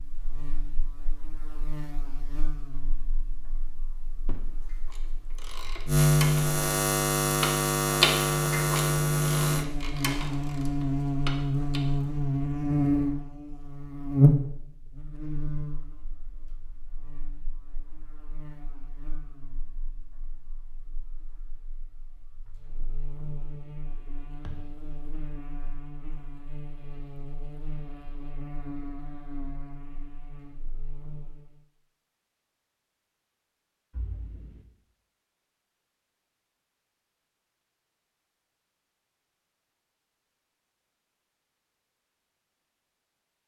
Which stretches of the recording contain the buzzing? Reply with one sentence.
You can hear the buzzing from 0.0 to 31.6 s.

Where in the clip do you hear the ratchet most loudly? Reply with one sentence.
The volume of the ratchet peaks at 8 seconds.